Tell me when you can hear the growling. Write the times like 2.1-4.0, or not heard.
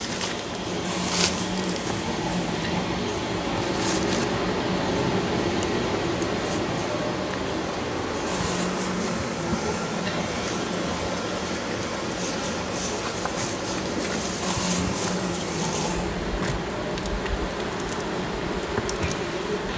0.8-2.9, 8.2-10.3, 14.4-16.2.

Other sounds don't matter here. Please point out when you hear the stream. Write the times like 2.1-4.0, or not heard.
0.0-19.7.